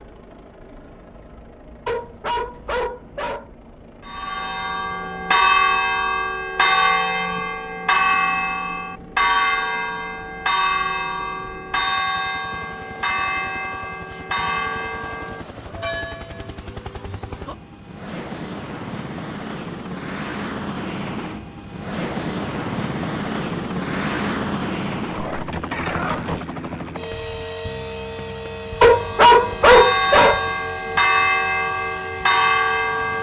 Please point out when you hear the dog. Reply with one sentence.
The dog can be heard from 1.9 to 3.5 s and from 28.8 to 30.4 s.